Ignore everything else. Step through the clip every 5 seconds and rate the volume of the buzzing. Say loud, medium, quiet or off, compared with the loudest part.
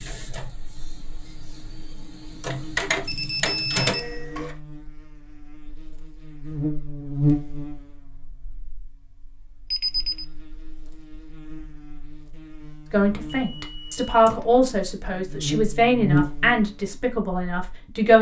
quiet, loud, quiet, loud.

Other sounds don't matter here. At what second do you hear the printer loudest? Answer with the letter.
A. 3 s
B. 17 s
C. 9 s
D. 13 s
A.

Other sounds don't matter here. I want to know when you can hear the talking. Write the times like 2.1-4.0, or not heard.
12.9-18.1.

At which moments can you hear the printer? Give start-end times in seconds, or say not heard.
0.0-4.5.